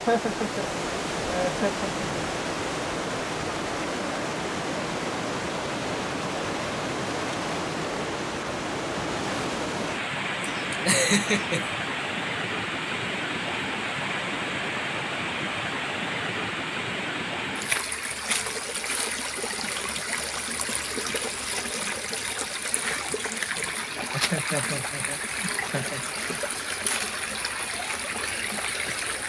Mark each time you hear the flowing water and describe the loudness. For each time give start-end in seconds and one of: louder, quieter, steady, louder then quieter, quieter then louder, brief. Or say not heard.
0.0-29.2 steady.